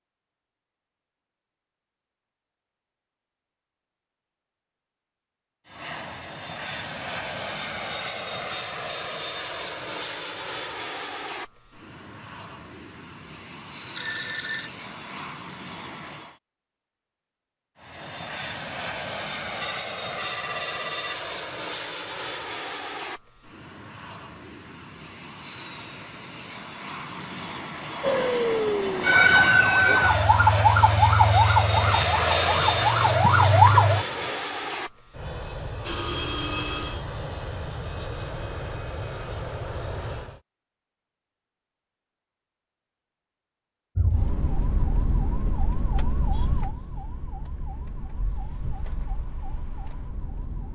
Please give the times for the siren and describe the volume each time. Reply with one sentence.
You can hear the siren from 28.0 to 34.4 s, getting quieter then louder; and from 44.0 to 50.7 s, getting quieter.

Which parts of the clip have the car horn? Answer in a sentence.
You can't hear the car horn here.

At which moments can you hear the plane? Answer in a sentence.
The plane can be heard from 5.7 to 16.4 s and from 17.8 to 40.4 s.